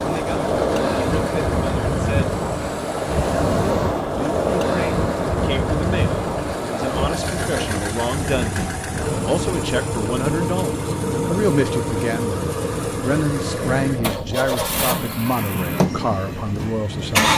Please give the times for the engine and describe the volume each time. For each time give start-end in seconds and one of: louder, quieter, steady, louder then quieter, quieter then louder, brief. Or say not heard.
0.0-17.3 louder.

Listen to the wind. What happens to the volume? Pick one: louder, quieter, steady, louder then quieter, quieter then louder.
quieter.